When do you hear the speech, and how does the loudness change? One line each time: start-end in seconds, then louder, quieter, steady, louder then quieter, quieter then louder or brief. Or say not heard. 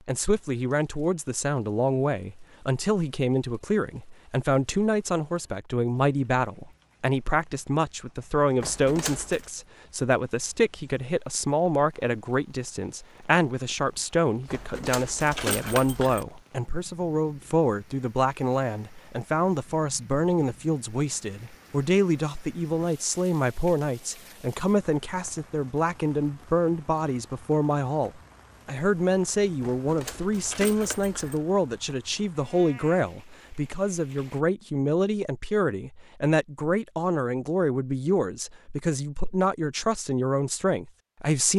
0.1-41.5 steady.